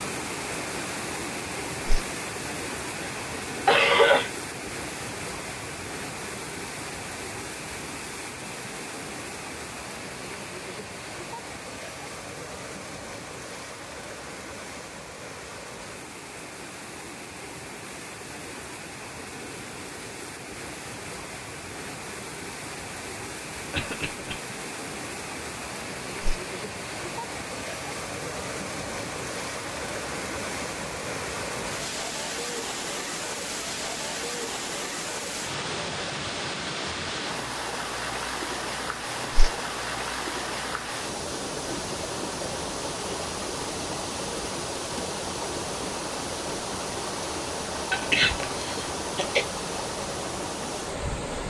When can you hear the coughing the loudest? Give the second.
4 s.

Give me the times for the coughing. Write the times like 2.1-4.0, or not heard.
3.0-4.3, 23.7-24.4, 47.9-49.5.